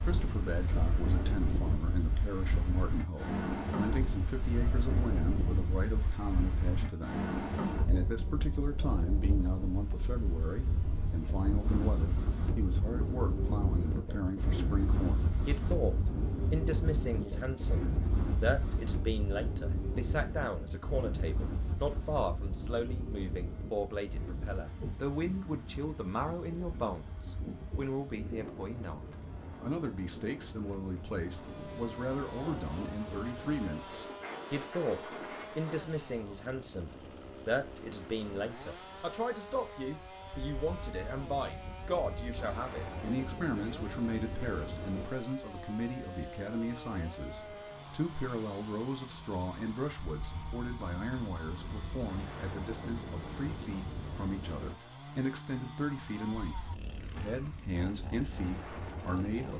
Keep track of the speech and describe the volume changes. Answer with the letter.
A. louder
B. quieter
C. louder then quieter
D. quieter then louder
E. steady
E.